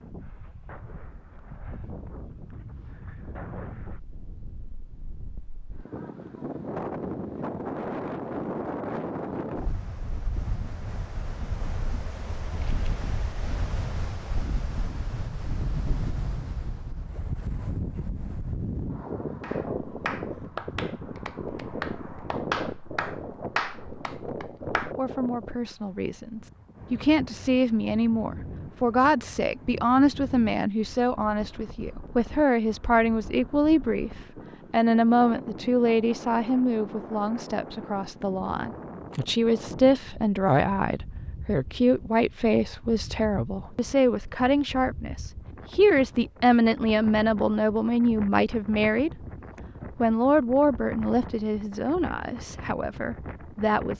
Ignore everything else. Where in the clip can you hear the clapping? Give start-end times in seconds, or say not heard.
19.4-24.9.